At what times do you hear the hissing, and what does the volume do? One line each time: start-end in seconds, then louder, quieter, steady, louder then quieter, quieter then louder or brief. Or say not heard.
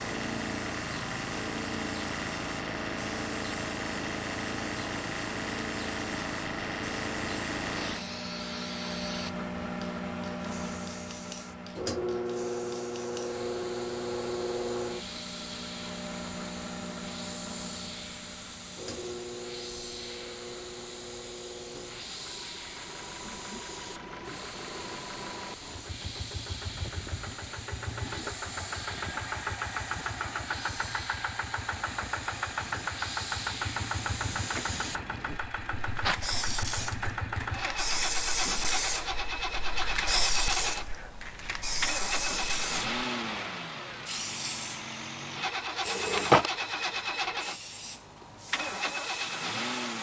0.0-49.9 louder.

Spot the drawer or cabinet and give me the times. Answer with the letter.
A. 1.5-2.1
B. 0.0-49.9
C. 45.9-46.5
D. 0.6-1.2
C.